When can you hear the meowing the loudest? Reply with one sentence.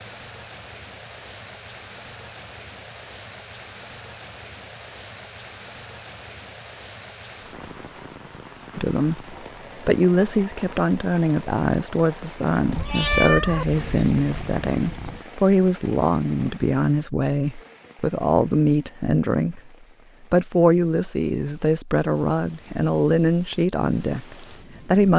The volume of the meowing peaks at 13 seconds.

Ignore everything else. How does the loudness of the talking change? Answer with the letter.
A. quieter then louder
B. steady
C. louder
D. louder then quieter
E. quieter
B.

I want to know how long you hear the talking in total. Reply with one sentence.
The talking can be heard for 16 seconds in total.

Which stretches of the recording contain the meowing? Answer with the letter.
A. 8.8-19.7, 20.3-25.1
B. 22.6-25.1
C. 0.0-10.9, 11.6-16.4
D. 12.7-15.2
D.